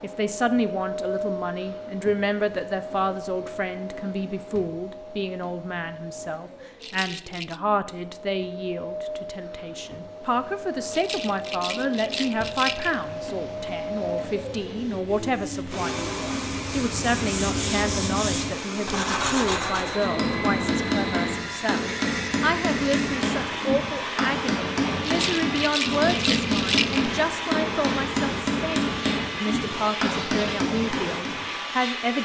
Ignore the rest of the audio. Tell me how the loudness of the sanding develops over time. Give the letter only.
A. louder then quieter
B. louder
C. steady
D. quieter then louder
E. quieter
B.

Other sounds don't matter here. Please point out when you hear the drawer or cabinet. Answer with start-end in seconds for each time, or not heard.
not heard.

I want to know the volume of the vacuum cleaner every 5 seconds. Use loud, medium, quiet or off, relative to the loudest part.
loud, medium, loud, loud, loud, loud, loud.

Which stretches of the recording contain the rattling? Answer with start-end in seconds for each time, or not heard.
6.8-7.6, 10.9-13.1, 25.0-27.1.